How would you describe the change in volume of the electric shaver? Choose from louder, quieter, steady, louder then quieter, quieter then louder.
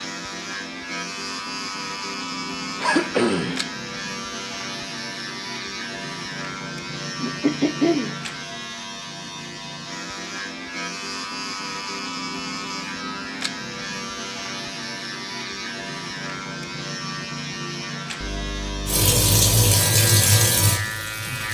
steady.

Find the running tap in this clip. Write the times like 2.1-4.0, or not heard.
18.9-21.4.